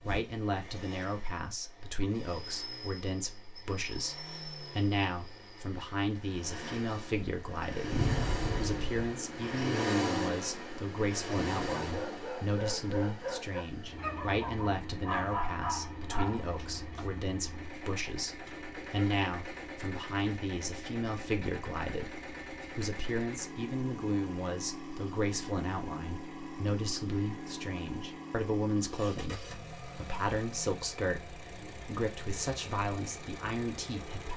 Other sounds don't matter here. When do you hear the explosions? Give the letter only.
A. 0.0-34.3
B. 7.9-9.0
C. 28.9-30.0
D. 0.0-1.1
B.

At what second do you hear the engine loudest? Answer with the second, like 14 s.
10 s.